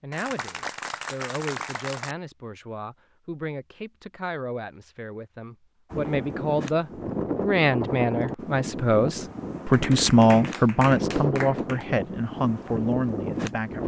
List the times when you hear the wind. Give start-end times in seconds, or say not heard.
5.9-13.8.